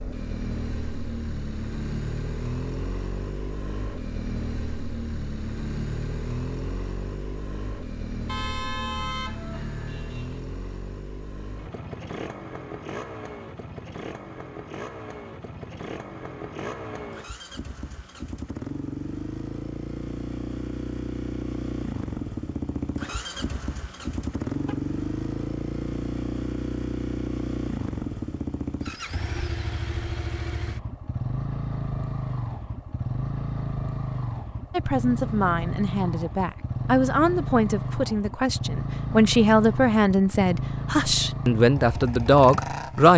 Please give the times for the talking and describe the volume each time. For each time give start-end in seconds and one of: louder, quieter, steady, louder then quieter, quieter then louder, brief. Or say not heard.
34.7-43.1 louder.